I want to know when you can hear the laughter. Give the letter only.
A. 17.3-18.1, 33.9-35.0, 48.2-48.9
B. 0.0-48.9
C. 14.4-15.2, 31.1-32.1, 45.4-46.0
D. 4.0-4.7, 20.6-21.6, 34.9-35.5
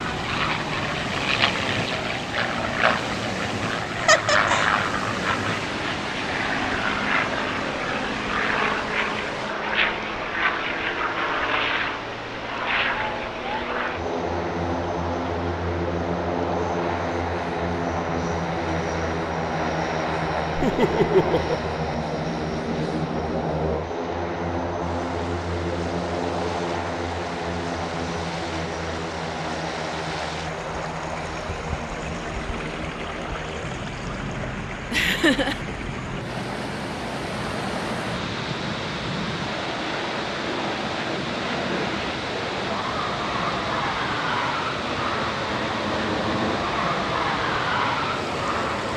D.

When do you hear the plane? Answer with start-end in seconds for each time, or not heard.
0.0-48.9.